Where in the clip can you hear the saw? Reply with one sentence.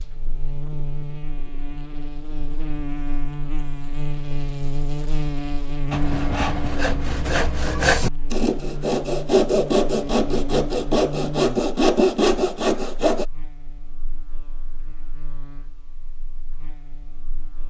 You can hear the saw from 5.9 to 13.2 s.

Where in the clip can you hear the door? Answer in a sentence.
The door can't be heard in this clip.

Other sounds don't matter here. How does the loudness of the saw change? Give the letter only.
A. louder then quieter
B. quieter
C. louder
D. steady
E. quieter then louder
C.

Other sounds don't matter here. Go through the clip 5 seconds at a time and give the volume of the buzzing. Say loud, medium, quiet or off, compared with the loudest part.
loud, loud, loud, quiet.